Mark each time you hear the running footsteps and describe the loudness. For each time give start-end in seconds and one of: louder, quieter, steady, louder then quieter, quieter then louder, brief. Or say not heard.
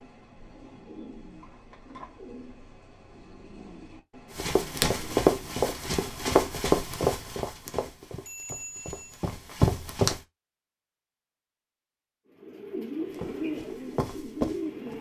4.3-10.2 quieter then louder
13.1-14.9 brief.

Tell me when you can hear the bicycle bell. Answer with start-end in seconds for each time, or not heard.
8.2-9.2.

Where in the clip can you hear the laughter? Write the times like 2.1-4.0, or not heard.
not heard.